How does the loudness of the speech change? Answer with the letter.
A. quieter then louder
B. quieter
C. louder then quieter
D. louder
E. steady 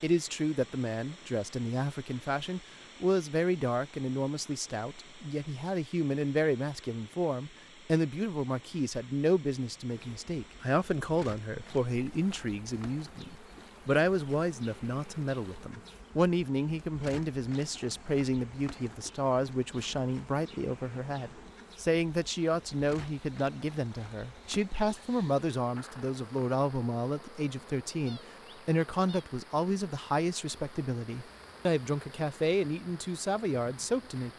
E.